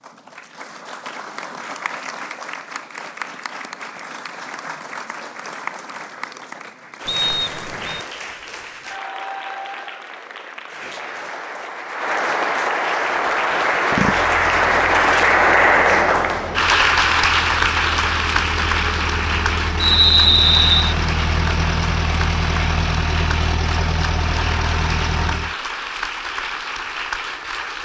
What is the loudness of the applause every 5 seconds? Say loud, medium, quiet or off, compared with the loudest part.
quiet, quiet, loud, loud, medium, medium.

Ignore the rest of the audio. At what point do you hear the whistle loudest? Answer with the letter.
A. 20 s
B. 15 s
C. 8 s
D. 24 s
A.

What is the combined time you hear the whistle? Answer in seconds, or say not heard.
2 s.